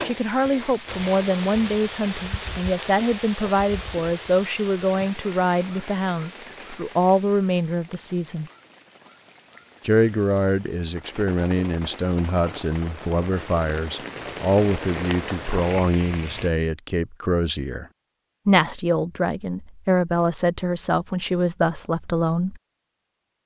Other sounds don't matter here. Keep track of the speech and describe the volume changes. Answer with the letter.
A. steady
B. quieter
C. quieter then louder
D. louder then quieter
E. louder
A.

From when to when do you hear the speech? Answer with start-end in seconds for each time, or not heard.
0.0-8.5, 9.8-17.9, 18.4-22.6.